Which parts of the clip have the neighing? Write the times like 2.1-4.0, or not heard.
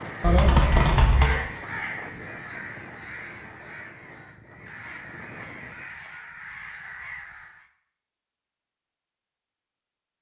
0.2-1.4.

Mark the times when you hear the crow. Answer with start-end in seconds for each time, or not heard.
0.0-7.7.